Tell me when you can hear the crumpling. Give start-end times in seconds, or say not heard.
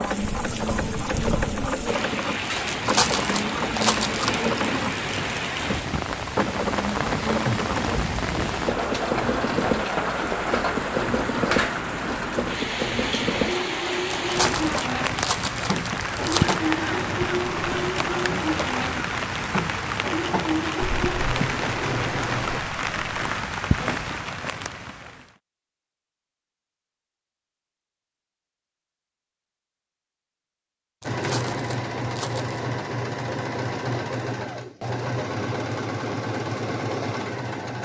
2.6-4.5, 14.1-16.6, 31.0-32.6.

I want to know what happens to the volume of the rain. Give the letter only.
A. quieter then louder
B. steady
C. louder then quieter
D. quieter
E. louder
B.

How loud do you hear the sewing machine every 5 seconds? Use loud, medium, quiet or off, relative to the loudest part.
loud, loud, loud, loud, loud, off, loud, loud.